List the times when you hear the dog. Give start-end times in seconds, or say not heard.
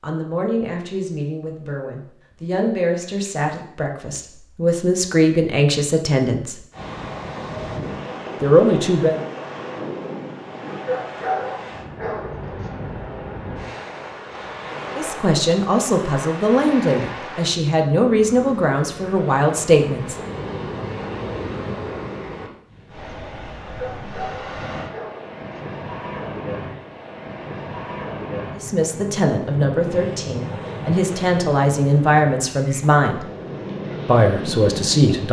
10.7-12.7, 23.6-25.6.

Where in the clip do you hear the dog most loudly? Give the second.
11 s.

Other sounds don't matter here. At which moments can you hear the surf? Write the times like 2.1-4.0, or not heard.
6.7-35.2.